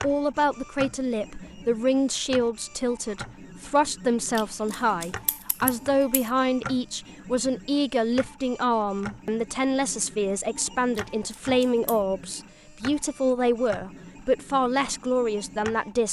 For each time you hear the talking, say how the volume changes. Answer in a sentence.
You can hear the talking from 0.0 to 16.0 s, at a steady volume.